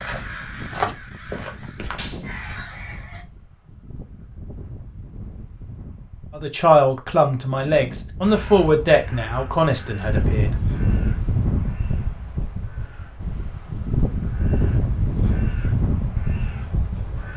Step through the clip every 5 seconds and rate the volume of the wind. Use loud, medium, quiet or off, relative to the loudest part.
quiet, quiet, loud, loud.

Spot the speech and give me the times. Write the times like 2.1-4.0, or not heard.
6.3-10.6.